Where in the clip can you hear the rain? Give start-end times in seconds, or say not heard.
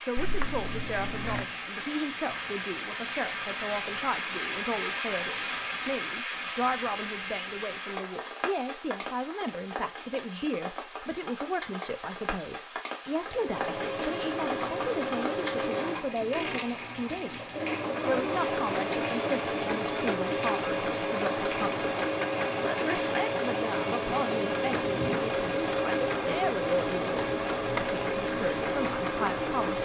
0.0-29.8.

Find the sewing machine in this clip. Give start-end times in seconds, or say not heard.
13.2-29.8.